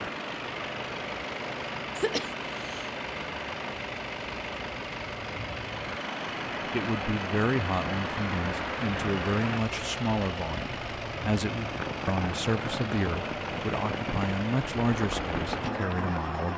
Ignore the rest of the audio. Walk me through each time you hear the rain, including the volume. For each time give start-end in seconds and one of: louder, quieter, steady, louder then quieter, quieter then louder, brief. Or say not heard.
0.0-16.5 louder.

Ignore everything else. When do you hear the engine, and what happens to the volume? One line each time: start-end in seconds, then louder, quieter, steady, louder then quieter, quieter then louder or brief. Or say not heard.
0.0-16.5 steady.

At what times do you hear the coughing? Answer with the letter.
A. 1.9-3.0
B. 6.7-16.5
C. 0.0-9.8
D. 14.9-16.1
A.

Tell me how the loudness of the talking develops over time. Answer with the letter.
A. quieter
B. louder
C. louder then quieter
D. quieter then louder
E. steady
E.